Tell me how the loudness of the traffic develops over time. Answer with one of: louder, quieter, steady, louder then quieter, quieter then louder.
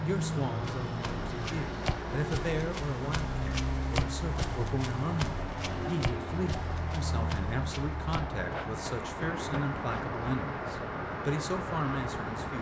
steady.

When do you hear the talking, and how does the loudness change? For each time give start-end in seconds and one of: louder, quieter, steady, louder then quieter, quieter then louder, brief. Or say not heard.
0.0-12.5 steady.